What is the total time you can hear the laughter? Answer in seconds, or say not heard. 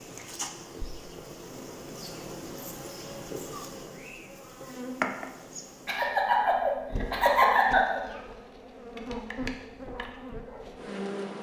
2 s.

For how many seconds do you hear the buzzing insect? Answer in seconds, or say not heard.
11 s.